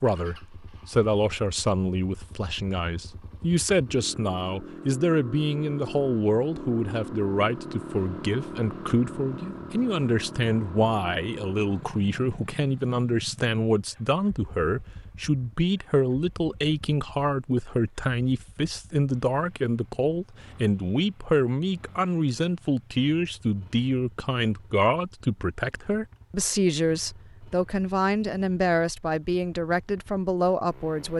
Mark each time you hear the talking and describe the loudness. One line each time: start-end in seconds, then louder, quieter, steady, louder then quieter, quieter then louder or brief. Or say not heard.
0.0-31.1 steady.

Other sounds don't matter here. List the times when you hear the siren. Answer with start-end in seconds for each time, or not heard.
not heard.